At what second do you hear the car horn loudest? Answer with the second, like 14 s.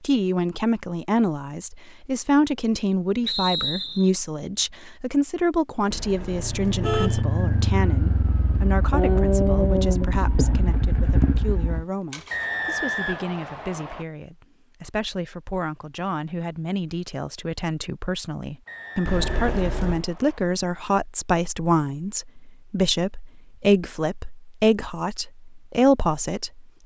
7 s.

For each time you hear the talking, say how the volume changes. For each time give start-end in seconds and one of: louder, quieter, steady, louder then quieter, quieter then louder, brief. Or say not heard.
0.0-26.6 quieter then louder.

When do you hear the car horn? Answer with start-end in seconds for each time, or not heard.
5.9-7.2, 19.1-20.0.